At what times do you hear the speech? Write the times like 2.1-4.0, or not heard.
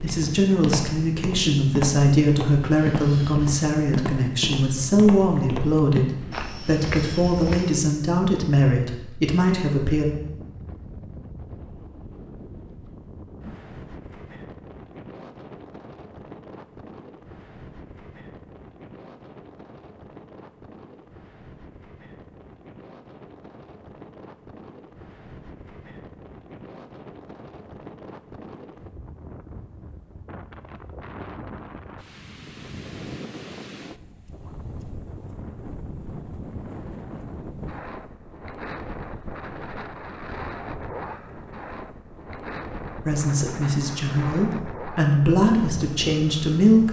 0.0-10.1, 43.0-46.8.